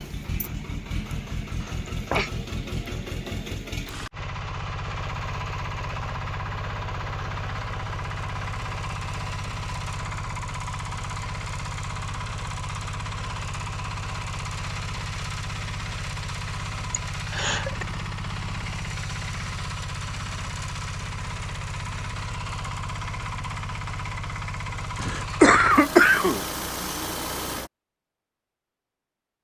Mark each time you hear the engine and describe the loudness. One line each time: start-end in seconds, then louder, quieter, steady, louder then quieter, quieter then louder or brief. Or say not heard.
0.0-27.7 steady.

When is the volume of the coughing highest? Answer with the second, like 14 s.
26 s.